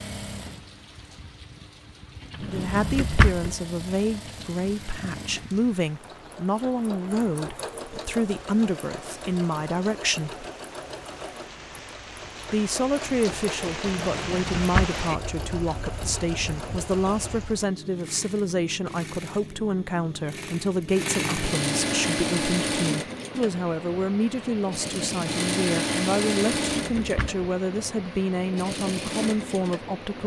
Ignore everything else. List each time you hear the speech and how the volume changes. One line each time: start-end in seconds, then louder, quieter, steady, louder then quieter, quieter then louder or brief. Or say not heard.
2.5-10.4 steady
12.5-30.2 steady.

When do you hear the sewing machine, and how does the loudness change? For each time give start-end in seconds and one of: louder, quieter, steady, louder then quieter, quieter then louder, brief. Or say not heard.
0.0-30.2 louder.